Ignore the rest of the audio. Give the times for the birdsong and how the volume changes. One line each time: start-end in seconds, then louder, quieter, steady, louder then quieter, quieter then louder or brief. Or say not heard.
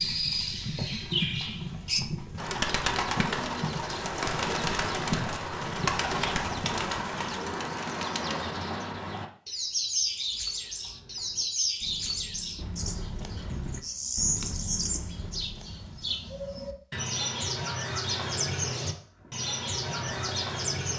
0.0-20.9 steady.